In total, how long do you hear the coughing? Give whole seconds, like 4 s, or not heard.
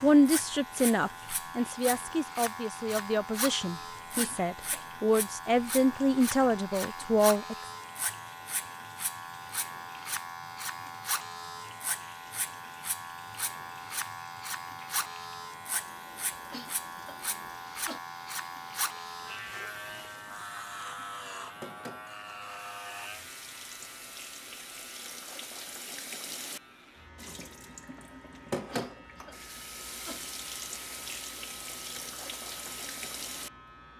4 s.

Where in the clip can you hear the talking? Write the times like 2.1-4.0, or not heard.
0.0-7.5.